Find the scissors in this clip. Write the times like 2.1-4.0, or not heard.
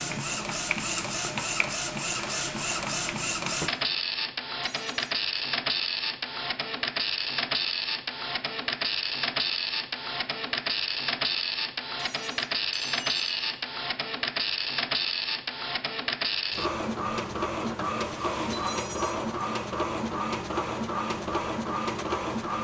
not heard.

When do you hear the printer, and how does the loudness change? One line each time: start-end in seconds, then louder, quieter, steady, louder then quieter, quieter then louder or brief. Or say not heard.
0.0-22.5 steady.